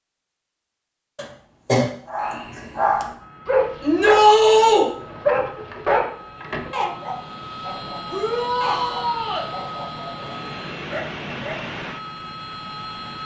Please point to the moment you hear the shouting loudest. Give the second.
4 s.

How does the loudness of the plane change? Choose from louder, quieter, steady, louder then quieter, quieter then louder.
louder.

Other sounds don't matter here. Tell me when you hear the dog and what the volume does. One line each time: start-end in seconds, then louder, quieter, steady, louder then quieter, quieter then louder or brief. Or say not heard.
2.0-11.6 quieter.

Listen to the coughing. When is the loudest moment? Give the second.
2 s.